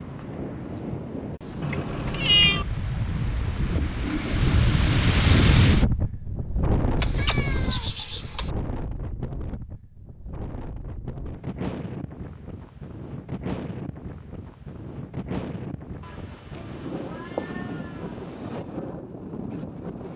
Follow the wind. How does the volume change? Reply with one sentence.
The loudness of the wind goes up, then down.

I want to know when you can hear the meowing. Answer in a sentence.
You can hear the meowing from 1.6 to 2.6 s, from 7.0 to 8.5 s and from 16.0 to 18.4 s.